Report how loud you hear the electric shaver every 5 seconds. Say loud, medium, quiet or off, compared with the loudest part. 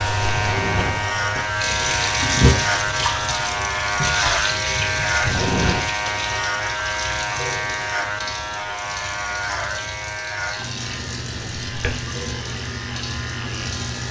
loud, loud, medium.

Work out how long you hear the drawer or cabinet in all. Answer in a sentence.
The drawer or cabinet can be heard for 2 seconds in total.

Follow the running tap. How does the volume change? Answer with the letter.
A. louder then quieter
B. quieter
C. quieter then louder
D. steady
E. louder
B.